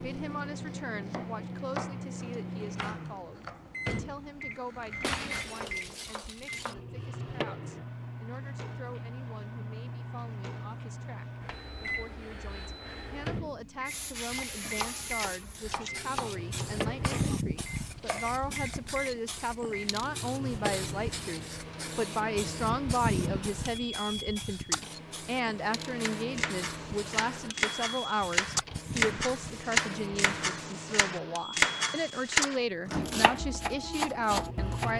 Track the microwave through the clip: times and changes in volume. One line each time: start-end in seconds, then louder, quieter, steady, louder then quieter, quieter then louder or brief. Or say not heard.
0.0-34.9 steady.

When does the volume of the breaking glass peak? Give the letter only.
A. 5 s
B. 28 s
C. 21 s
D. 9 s
A.